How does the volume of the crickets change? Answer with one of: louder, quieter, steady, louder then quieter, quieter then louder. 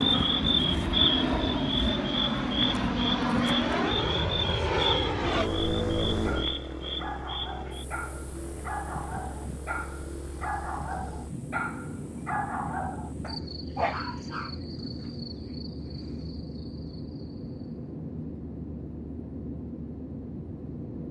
quieter.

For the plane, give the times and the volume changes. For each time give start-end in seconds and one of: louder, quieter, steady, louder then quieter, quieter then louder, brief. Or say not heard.
0.0-21.0 quieter.